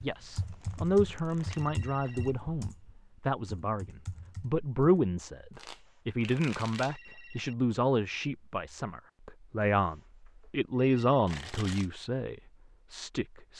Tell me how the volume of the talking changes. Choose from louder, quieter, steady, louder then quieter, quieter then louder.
steady.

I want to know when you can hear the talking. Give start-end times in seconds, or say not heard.
0.0-13.5.